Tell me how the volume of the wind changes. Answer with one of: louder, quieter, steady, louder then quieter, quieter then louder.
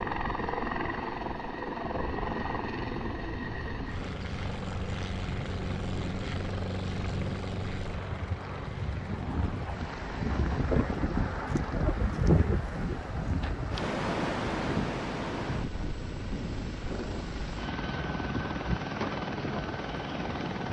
louder then quieter.